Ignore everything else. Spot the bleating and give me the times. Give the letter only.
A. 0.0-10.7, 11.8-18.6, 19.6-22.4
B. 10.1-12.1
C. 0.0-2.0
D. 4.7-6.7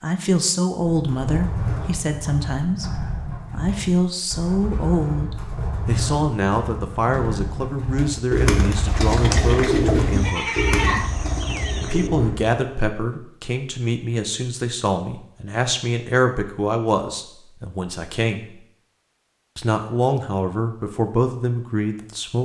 B.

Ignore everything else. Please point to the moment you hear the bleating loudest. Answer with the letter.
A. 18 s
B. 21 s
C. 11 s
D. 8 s
C.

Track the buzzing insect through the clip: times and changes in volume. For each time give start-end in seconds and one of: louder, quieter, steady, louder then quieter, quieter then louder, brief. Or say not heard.
not heard.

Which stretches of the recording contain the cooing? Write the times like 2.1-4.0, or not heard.
0.8-12.6.